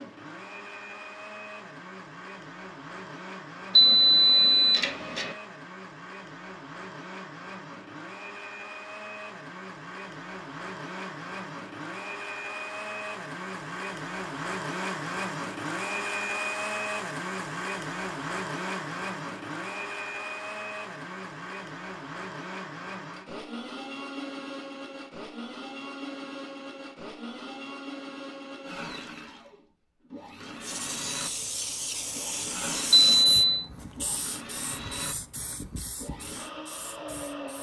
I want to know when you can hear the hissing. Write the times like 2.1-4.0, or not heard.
30.6-37.5.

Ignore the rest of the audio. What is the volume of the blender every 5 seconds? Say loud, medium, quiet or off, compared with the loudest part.
medium, medium, loud, loud, medium, medium, medium, medium.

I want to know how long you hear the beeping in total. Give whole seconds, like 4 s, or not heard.
2 s.